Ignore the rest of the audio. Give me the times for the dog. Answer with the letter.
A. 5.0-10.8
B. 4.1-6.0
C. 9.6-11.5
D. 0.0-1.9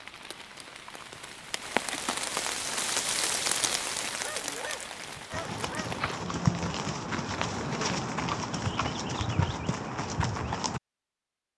B.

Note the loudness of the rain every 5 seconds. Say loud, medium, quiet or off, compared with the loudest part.
loud, medium, off.